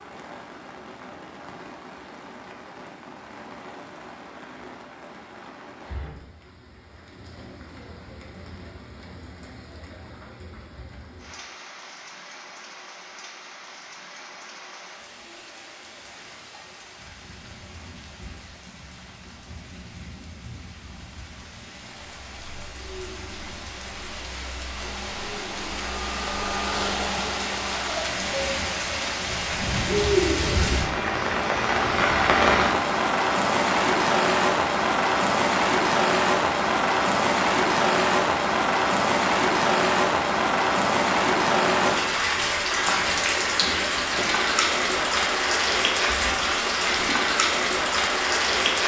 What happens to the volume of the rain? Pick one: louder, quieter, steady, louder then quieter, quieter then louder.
louder.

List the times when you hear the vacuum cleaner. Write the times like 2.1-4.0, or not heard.
24.7-28.1.